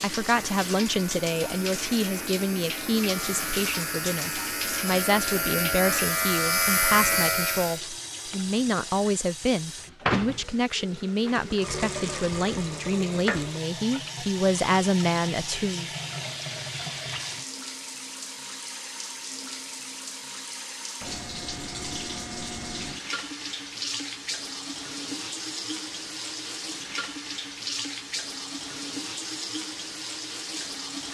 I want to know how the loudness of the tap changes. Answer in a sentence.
The loudness of the tap stays about the same.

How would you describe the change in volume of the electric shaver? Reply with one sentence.
The loudness of the electric shaver goes up.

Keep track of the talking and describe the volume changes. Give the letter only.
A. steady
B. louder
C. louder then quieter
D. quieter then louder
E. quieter
A.